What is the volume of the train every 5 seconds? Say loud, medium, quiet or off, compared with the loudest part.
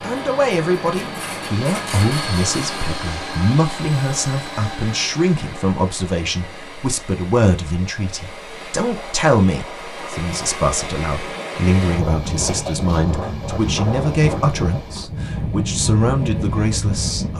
loud, medium, loud, loud.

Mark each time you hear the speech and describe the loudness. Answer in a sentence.
You can hear the speech from 0.0 to 17.3 s, at a steady volume.